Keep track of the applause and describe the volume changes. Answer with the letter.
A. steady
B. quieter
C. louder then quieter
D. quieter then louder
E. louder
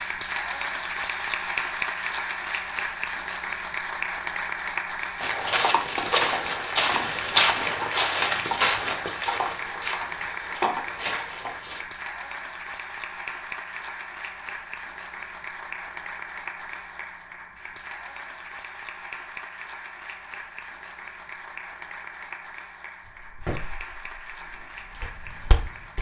B.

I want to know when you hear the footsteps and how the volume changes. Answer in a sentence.
You can hear the footsteps from 5.2 to 11.8 s, getting quieter; and briefly from 23.0 to 25.9 s.